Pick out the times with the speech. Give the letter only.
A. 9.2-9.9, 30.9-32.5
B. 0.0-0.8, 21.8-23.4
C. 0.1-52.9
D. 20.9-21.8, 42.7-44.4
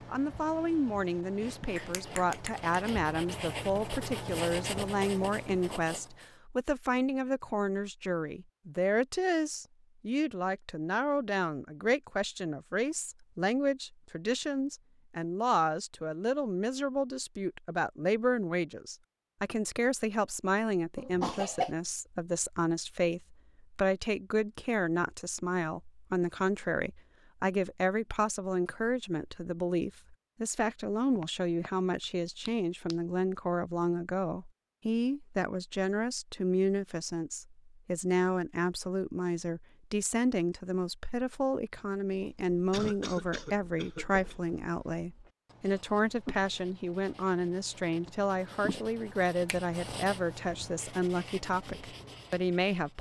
C.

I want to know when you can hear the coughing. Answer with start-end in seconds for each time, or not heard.
20.9-21.8, 42.7-44.4.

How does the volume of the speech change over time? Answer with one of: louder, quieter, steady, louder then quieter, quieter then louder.
steady.